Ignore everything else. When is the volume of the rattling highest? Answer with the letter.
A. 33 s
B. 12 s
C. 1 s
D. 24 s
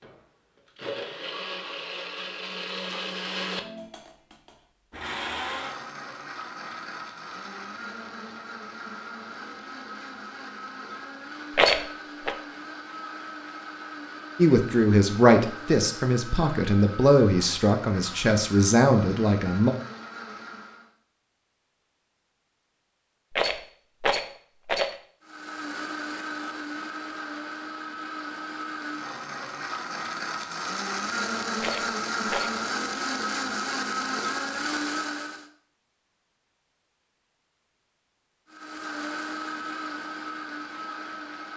B.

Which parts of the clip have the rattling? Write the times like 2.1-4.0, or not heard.
11.6-12.3, 23.3-24.9, 31.6-32.5.